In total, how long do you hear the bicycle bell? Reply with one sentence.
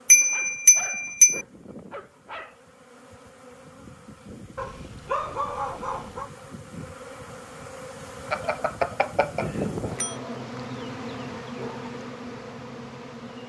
You can hear the bicycle bell for 3 seconds altogether.